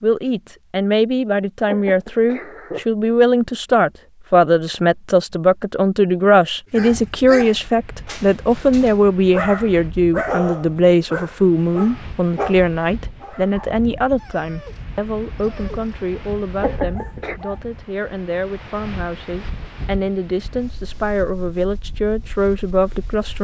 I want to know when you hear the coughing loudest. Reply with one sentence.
The loudest moment of the coughing is at 17 seconds.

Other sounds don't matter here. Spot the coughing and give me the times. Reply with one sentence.
The coughing can be heard from 1.6 to 2.9 s and from 16.6 to 17.4 s.